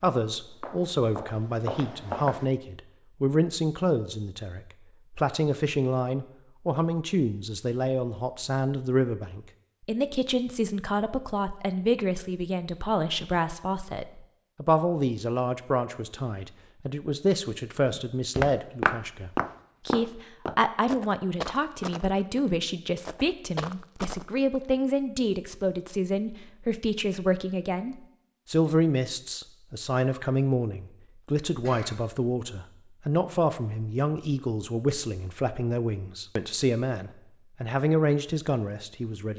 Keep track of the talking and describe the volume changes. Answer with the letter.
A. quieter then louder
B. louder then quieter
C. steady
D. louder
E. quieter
C.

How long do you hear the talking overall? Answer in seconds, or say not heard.
39 s.